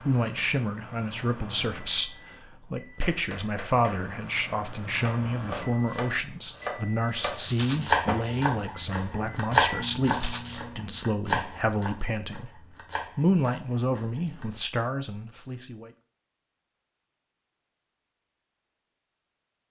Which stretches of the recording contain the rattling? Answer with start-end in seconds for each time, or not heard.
7.5-8.0, 10.1-10.7.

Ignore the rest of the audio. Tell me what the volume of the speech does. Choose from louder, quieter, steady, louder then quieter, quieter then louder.
steady.